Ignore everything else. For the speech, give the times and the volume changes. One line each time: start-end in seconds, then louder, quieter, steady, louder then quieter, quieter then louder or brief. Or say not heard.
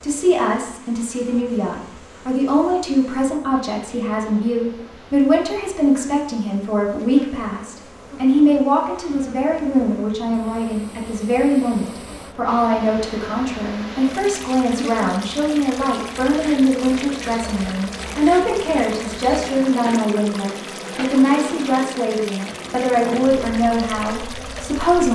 0.0-25.1 steady.